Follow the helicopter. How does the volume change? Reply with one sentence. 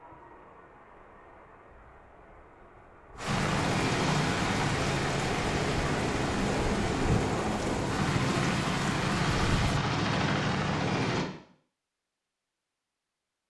The loudness of the helicopter stays about the same.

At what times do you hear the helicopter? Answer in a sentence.
You can hear the helicopter from 3.2 to 11.2 s.